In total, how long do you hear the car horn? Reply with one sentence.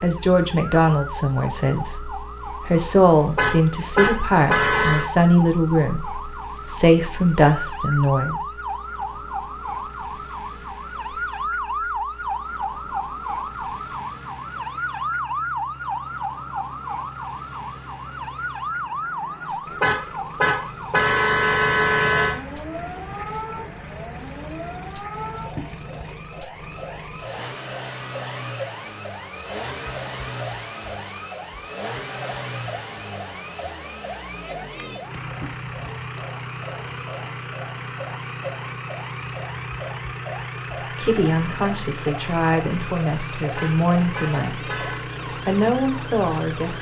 The car horn can be heard for 6 seconds in total.